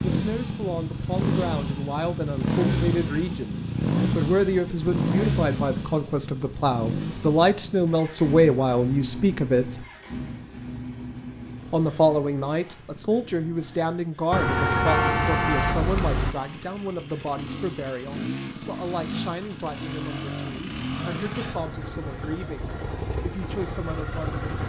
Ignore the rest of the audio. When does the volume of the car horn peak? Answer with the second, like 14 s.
15 s.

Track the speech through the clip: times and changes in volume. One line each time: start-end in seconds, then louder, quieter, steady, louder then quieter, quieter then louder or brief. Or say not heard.
0.0-9.8 louder
11.7-24.4 quieter.